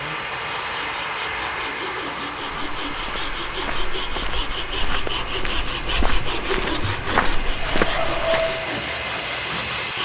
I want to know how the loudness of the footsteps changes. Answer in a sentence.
The volume of the footsteps goes up.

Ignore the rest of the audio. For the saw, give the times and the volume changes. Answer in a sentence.
The saw can be heard from 0.0 to 9.9 s, getting louder.